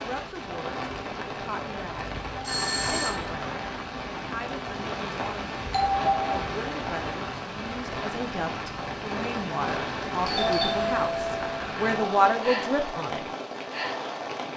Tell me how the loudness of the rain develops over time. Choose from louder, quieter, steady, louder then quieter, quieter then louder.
steady.